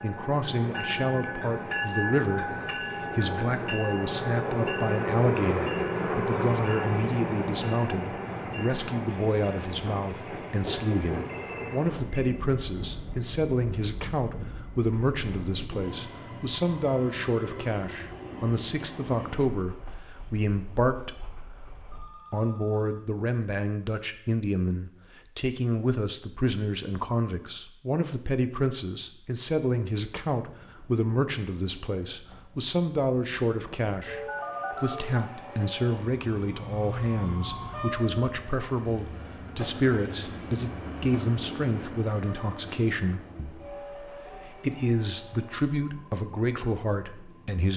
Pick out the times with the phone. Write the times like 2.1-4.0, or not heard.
11.2-12.0, 21.9-23.1, 34.0-35.2.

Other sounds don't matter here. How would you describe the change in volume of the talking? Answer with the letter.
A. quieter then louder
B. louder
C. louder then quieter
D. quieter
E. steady
E.